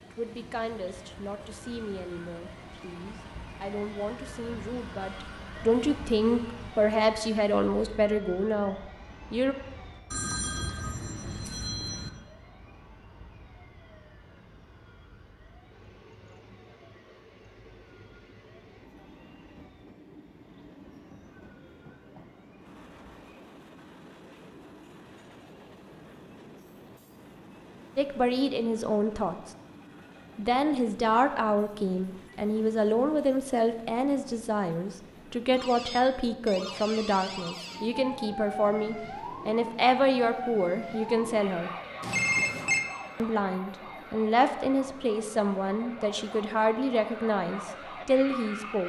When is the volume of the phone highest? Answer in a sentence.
The volume of the phone peaks at 42 seconds.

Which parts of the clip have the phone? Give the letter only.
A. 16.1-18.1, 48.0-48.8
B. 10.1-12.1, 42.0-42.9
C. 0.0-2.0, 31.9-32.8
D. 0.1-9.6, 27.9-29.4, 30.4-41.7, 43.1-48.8
B.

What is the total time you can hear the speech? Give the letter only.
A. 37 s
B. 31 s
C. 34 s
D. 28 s
D.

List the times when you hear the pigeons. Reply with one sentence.
The pigeons can't be heard in this clip.